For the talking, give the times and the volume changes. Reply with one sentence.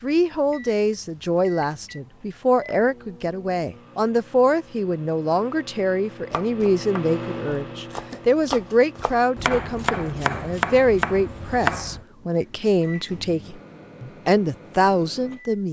The talking can be heard from 0.0 to 15.6 s, at a steady volume.